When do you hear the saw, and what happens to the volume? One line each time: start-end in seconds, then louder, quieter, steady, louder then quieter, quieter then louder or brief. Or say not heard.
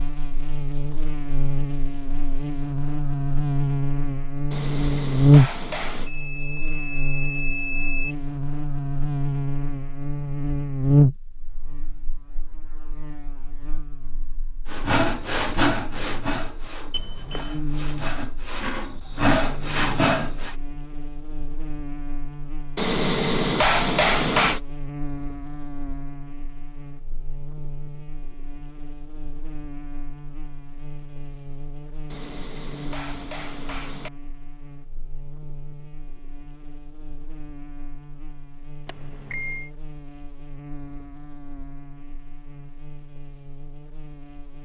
14.7-20.6 quieter then louder.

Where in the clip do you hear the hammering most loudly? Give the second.
24 s.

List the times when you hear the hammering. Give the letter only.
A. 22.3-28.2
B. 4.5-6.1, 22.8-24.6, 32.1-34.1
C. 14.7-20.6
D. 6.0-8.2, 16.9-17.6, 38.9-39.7
B.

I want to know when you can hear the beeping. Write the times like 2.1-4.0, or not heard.
6.0-8.2, 16.9-17.6, 38.9-39.7.